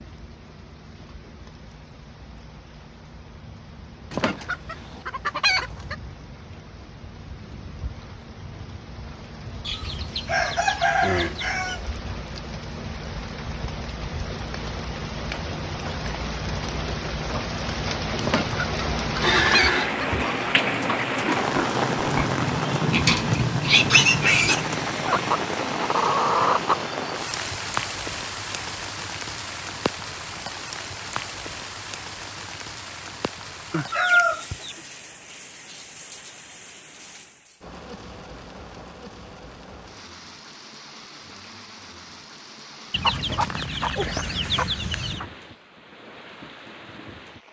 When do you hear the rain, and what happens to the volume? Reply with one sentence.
You can hear the rain from 0.0 to 47.4 s, getting louder then quieter.